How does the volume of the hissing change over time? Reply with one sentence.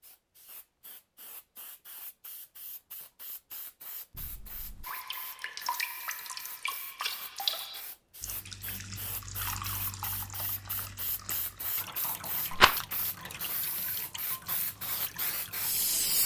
The loudness of the hissing goes up.